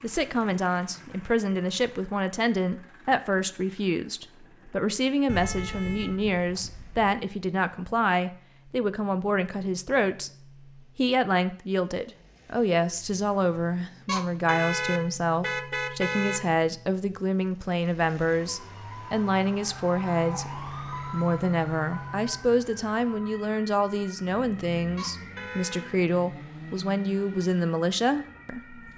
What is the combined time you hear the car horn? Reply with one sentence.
You can hear the car horn for 5 seconds altogether.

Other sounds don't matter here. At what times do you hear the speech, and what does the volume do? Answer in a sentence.
The speech can be heard from 0.0 to 28.8 s, at a steady volume.